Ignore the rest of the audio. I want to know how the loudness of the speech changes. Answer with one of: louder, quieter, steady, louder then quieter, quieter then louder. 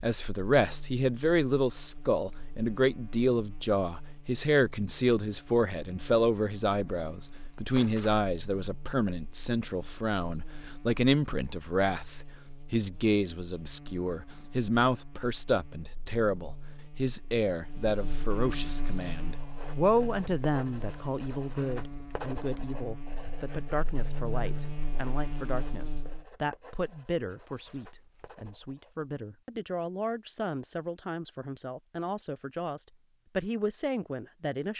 quieter.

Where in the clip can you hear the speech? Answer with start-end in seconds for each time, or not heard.
0.0-34.7.